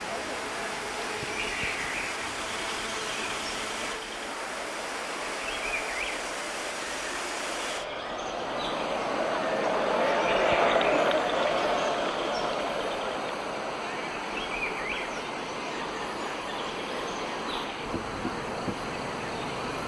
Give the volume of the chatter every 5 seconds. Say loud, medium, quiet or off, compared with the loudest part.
quiet, medium, loud, quiet.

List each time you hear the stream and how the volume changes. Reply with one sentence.
You can hear the stream from 0.0 to 19.8 s, at a steady volume.